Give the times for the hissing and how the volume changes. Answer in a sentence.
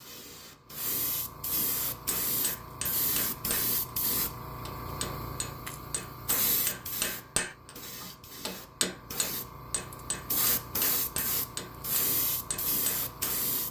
The hissing can be heard from 0.0 to 13.6 s, at a steady volume.